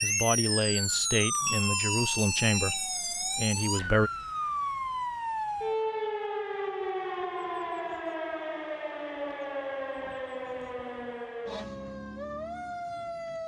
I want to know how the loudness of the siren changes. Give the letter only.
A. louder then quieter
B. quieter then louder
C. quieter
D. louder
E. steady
C.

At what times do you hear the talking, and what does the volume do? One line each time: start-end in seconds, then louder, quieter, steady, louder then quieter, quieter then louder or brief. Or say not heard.
0.0-4.1 steady.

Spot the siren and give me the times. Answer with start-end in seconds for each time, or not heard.
0.0-13.4.